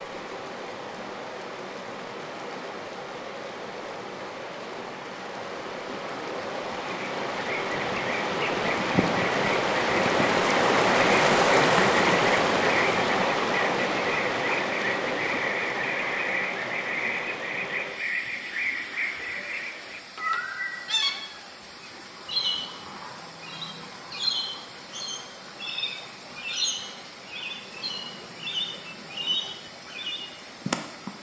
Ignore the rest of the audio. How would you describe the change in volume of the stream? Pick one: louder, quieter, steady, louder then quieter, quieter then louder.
louder then quieter.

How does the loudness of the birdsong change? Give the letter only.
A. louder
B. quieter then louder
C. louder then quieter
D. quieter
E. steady
E.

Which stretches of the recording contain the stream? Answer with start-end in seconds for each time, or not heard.
0.0-31.1.